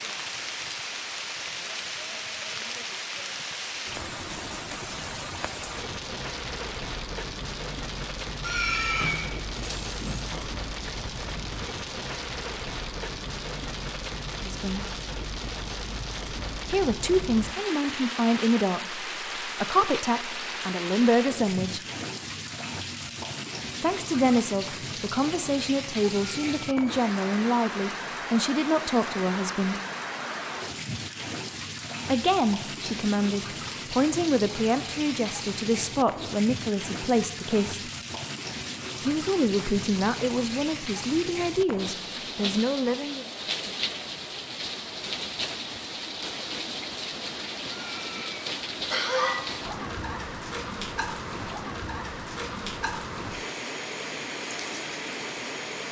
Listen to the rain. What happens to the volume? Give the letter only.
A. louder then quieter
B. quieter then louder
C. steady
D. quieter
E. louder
C.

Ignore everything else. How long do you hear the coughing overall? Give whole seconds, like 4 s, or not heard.
3 s.